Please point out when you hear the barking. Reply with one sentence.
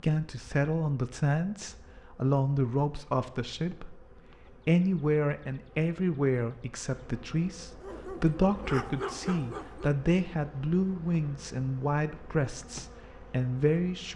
The barking can be heard from 7.8 to 9.9 s.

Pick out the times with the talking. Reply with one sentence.
The talking can be heard from 0.0 to 4.0 s and from 4.7 to 14.1 s.